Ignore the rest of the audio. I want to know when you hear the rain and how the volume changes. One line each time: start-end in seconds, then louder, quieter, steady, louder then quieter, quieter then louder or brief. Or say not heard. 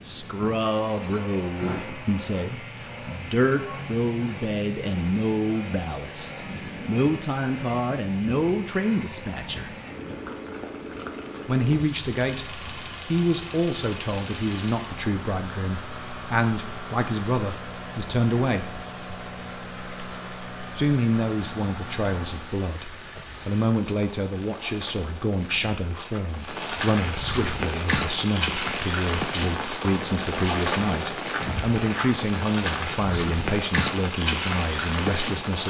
0.0-35.6 louder.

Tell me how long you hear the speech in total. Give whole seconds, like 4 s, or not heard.
32 s.